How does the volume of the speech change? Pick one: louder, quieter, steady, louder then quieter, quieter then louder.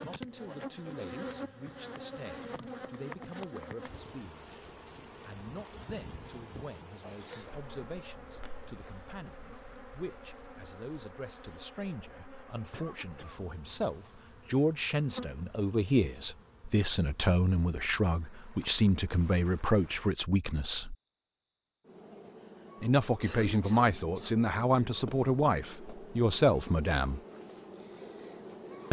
louder.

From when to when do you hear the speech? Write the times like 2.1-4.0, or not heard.
0.0-20.9, 22.8-27.2.